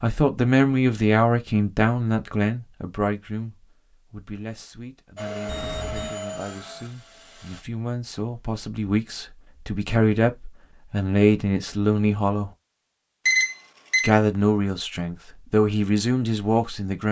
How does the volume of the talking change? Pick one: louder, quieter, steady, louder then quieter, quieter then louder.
quieter then louder.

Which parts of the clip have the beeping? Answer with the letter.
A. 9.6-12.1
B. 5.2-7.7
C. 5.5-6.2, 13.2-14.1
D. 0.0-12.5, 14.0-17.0
C.